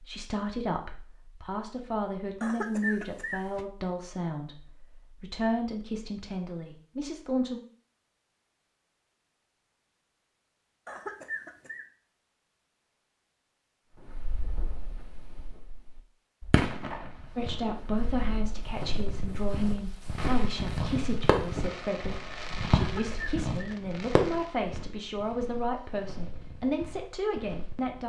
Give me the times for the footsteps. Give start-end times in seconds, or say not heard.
17.1-28.0.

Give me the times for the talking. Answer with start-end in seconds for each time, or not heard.
0.0-7.6, 17.4-28.0.